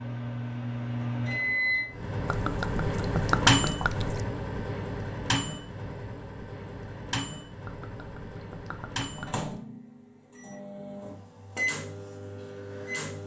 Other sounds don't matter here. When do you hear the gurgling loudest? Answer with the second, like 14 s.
3 s.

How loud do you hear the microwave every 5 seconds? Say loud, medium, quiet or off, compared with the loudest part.
loud, medium, medium.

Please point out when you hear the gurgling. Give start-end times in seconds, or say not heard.
2.2-4.2, 7.7-9.4.